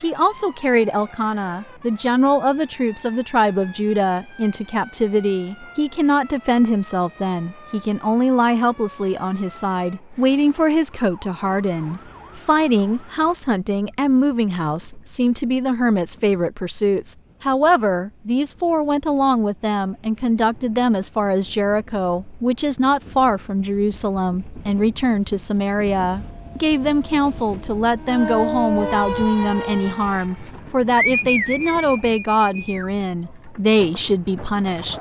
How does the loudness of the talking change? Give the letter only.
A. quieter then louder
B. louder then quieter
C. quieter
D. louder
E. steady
E.